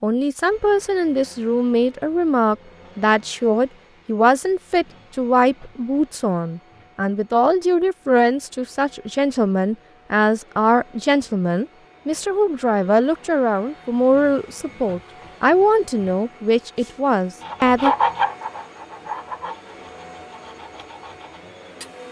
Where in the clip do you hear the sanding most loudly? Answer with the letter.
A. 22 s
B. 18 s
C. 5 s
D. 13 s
B.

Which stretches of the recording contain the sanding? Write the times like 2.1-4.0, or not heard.
16.8-22.0.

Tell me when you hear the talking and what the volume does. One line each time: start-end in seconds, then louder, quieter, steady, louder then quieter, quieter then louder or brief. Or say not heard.
0.0-17.9 steady.